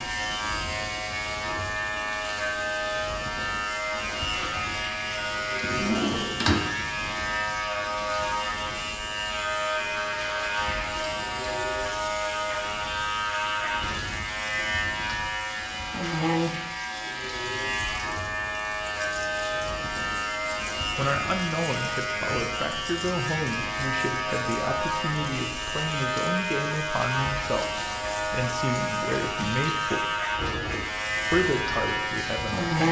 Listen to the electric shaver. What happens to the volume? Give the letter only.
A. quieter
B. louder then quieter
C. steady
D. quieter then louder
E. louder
C.